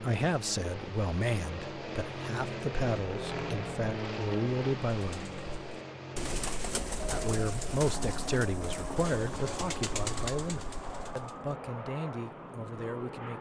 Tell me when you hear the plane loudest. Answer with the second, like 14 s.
4 s.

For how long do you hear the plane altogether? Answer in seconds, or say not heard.
13 s.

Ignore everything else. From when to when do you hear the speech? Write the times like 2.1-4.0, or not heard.
0.0-5.3, 7.1-13.3.